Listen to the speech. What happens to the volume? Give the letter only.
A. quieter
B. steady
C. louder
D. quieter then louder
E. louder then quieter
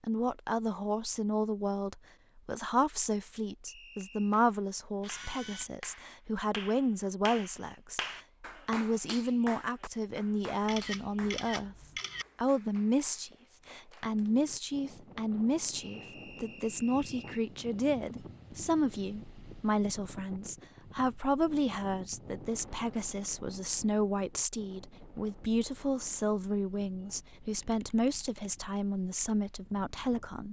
B.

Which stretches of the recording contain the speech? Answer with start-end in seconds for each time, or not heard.
0.0-11.8, 12.3-30.4.